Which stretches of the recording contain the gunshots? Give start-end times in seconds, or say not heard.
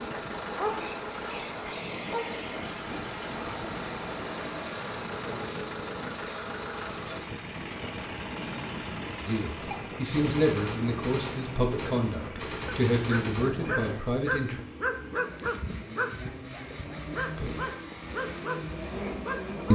9.7-13.5.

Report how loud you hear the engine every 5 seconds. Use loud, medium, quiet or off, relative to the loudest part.
loud, loud, medium, loud.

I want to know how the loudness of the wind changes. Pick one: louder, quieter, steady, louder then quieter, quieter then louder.
steady.